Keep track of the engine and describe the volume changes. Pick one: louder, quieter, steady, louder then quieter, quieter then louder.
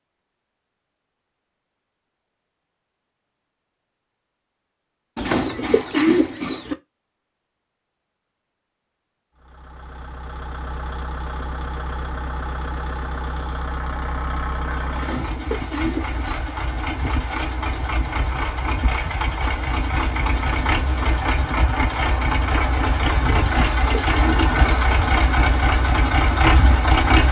louder.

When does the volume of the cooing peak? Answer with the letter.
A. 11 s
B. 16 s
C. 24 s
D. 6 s
D.